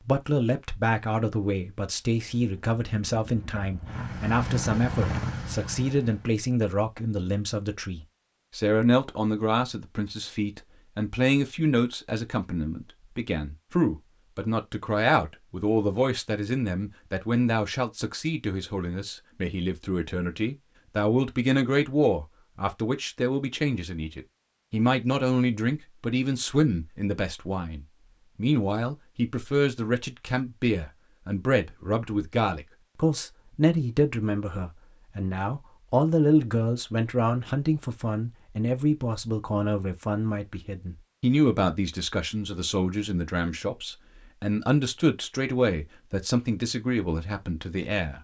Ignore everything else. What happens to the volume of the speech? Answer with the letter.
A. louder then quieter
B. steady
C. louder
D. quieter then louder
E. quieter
B.